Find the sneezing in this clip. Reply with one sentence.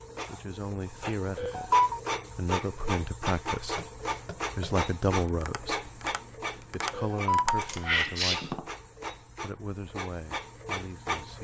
The sneezing can be heard from 1.4 to 2.0 s and from 6.9 to 8.5 s.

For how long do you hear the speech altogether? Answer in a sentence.
You can hear the speech for 9 seconds altogether.